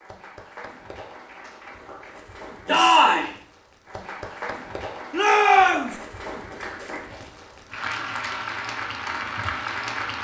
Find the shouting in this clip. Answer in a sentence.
You can hear the shouting from 2.6 to 3.3 s and from 5.1 to 6.0 s.